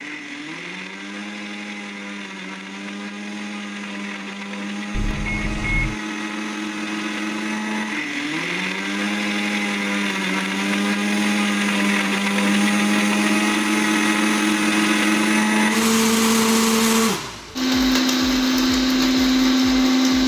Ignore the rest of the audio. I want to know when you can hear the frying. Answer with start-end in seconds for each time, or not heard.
not heard.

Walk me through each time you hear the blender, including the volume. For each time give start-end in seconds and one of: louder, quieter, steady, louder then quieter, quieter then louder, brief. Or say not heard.
0.0-20.2 louder.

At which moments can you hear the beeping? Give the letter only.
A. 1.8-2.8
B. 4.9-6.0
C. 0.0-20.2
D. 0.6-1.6
B.